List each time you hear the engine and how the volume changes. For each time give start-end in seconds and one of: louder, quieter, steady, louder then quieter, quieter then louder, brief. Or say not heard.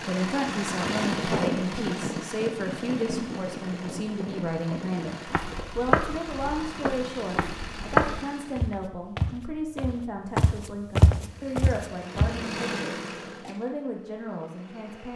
0.0-8.7 quieter
11.1-15.1 louder then quieter.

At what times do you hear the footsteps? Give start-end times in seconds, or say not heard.
5.2-12.4.